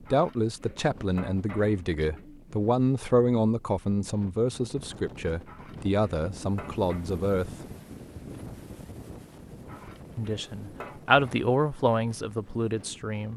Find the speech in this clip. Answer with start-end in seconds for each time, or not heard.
0.1-7.7, 10.2-13.3.